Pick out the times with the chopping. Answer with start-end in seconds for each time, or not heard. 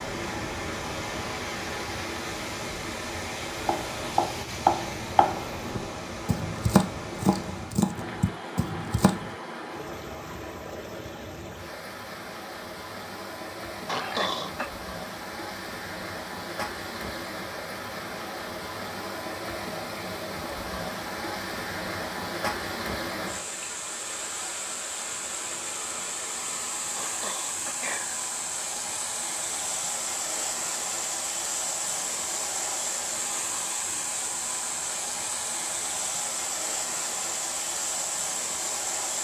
3.5-9.3.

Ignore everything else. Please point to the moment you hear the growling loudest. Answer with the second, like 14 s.
14 s.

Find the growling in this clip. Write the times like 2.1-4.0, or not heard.
13.8-14.7, 26.9-28.2.